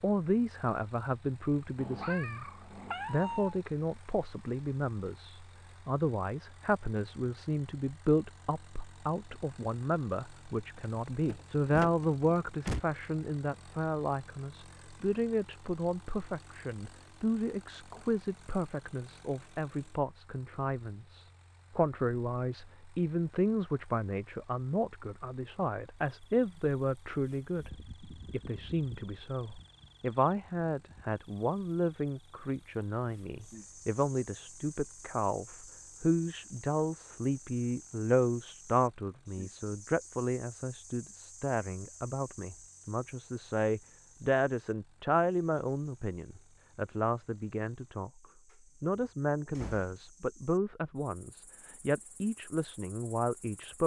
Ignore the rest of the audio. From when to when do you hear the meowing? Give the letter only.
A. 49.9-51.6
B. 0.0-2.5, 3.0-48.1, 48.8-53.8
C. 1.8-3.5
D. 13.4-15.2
C.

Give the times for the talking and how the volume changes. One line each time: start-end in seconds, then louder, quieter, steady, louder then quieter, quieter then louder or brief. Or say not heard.
0.0-2.5 brief
3.0-48.1 steady
48.8-53.8 quieter then louder.